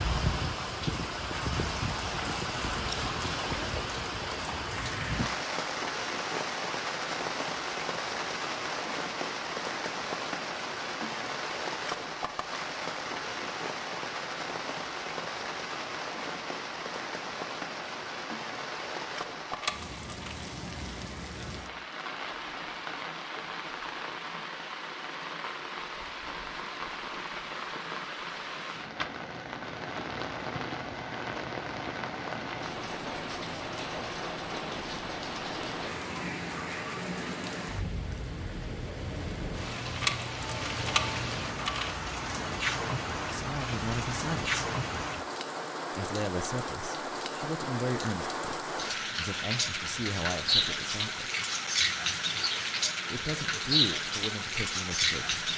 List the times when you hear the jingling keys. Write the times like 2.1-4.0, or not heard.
19.6-20.5, 40.0-42.0.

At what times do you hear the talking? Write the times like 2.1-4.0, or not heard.
43.3-44.6, 46.0-51.3, 53.1-55.4.